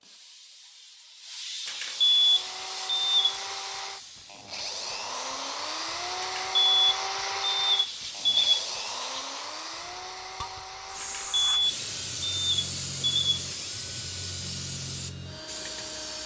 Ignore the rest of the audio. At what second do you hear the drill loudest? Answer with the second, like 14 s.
7 s.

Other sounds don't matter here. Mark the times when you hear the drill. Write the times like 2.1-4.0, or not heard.
2.0-16.2.